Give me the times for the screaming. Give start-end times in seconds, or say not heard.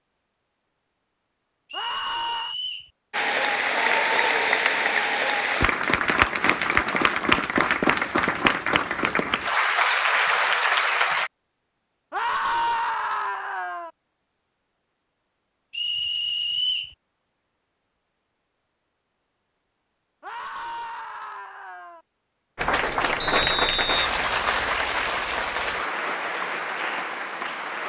1.7-2.5, 12.1-13.9, 20.2-22.1.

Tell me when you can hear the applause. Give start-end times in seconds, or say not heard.
3.1-11.3, 22.6-27.8.